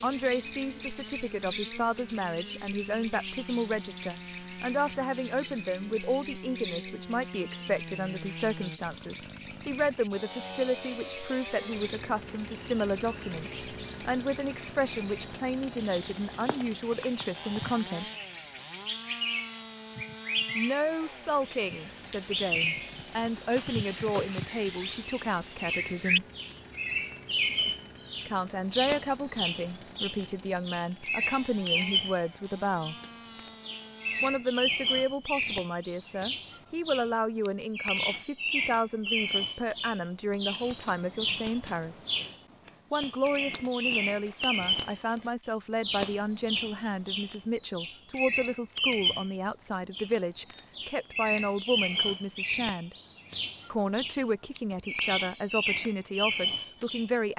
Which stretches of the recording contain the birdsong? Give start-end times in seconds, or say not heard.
0.0-57.1.